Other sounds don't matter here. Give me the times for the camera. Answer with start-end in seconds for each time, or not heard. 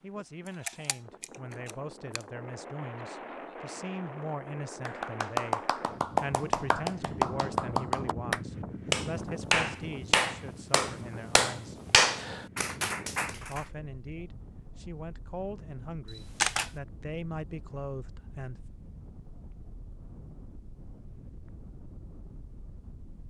0.5-2.2, 16.1-16.7.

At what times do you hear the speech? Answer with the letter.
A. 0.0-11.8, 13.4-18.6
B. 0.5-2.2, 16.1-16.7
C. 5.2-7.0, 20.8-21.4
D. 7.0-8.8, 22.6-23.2
A.